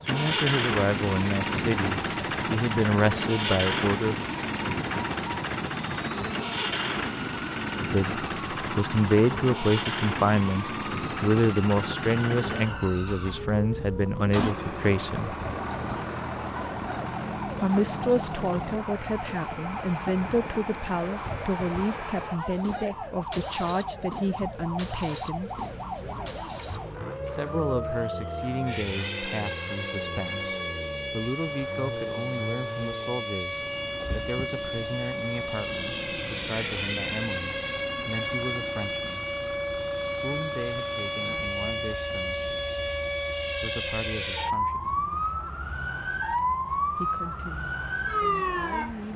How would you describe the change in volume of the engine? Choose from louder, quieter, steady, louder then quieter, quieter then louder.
quieter.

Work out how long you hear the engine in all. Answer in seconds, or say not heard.
49 s.